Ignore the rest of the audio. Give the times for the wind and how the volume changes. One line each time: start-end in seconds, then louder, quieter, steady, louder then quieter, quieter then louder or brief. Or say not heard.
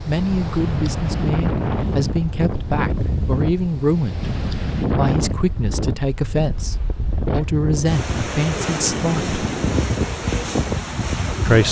0.0-11.6 steady.